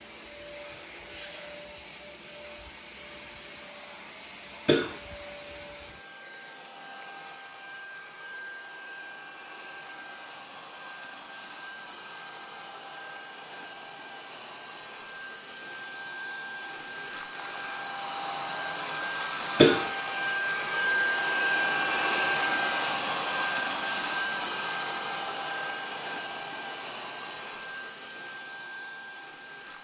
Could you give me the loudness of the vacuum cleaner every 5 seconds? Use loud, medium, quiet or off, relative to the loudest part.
quiet, quiet, quiet, medium, loud, medium.